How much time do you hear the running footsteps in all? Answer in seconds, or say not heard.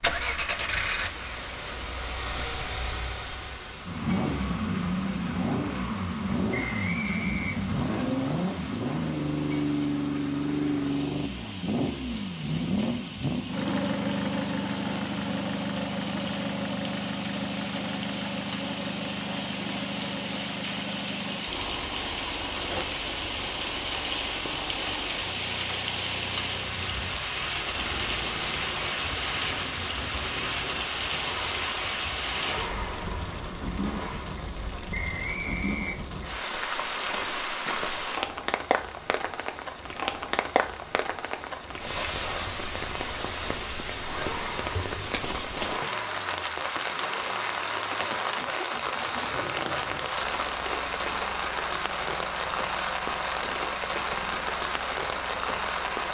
not heard.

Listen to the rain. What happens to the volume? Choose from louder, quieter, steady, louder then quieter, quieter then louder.
louder.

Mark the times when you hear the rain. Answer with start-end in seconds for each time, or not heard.
0.0-56.1.